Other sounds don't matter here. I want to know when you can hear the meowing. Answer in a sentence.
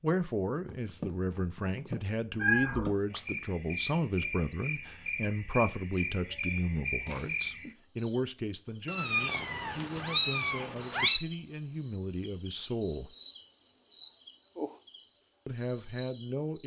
The meowing can be heard from 0.7 to 3.2 s and from 8.8 to 11.2 s.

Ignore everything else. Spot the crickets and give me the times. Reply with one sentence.
The crickets can be heard from 3.1 to 16.6 s.